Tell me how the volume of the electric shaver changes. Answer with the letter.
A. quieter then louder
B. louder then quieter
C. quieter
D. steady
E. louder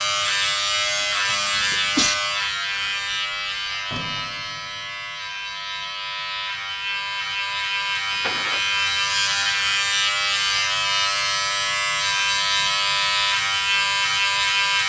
A.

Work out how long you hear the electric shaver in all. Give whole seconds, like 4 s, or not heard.
15 s.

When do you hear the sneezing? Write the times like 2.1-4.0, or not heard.
1.2-2.1.